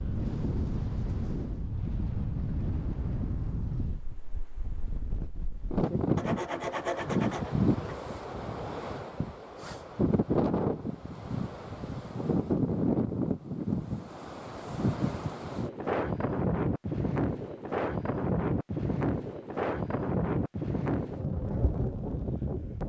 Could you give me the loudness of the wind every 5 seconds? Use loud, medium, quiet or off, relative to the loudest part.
medium, loud, loud, loud, loud.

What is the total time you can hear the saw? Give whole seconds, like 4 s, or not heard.
2 s.